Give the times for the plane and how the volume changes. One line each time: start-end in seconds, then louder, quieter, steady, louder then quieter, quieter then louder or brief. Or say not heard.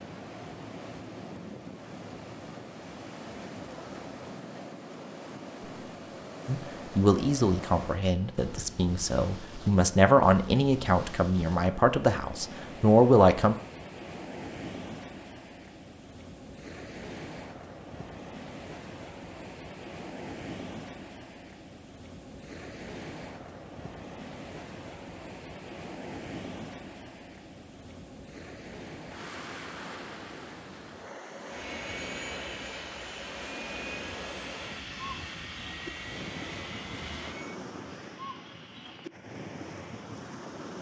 31.4-37.6 steady.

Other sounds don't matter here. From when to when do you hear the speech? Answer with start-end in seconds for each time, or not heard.
6.5-13.6.